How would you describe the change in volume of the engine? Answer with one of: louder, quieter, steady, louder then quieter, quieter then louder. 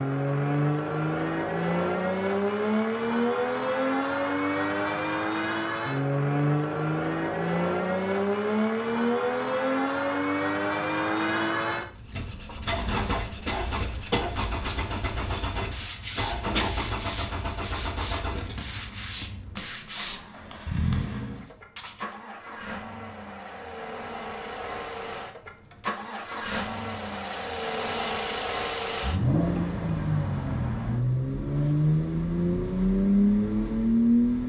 quieter then louder.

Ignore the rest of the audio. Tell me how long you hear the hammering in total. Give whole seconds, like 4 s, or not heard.
not heard.